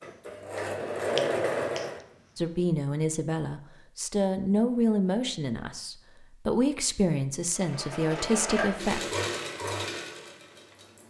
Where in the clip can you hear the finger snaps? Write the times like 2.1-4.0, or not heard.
0.0-2.6.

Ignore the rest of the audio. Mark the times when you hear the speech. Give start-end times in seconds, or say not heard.
2.4-9.0.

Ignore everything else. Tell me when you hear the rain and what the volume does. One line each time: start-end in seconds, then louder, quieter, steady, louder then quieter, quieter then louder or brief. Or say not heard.
not heard.